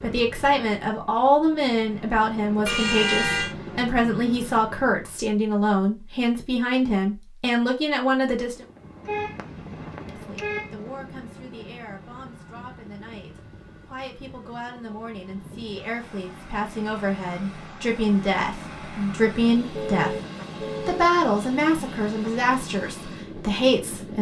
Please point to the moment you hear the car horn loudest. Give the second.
3 s.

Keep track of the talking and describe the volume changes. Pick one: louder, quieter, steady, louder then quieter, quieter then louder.
quieter then louder.